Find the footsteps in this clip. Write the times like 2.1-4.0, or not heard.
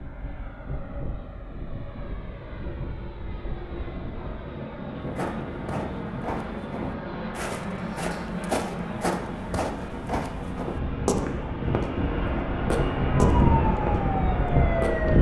5.0-15.1.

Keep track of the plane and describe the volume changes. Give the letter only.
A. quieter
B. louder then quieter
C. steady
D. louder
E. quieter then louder
D.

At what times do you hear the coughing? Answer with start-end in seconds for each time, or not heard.
not heard.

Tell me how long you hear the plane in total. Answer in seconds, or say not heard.
15 s.